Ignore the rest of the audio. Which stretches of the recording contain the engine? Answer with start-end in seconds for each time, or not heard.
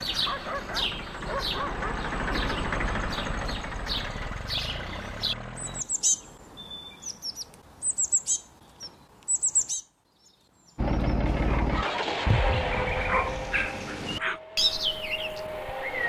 0.0-5.8, 10.8-16.0.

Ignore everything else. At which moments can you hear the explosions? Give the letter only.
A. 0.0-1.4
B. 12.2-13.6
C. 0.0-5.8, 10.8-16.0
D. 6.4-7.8
B.